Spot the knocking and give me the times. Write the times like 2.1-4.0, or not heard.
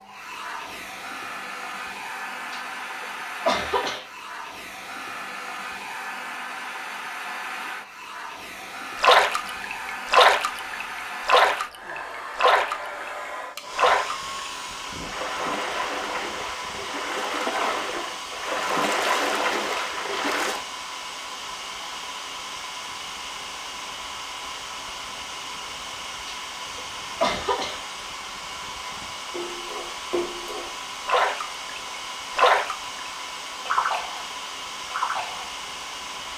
not heard.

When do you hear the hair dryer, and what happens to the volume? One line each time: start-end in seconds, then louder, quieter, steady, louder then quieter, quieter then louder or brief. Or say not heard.
0.0-36.3 steady.